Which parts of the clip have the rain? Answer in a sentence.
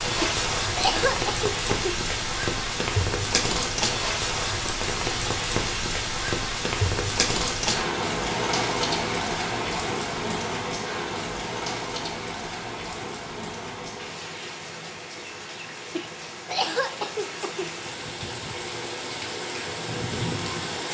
The rain can be heard from 0.0 to 20.8 s.